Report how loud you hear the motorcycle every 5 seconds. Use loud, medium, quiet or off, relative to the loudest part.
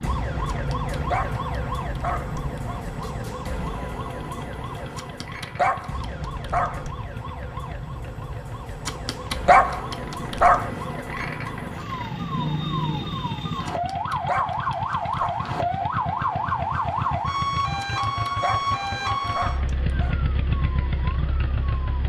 medium, medium, medium, loud, loud.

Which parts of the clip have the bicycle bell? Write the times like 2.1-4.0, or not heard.
not heard.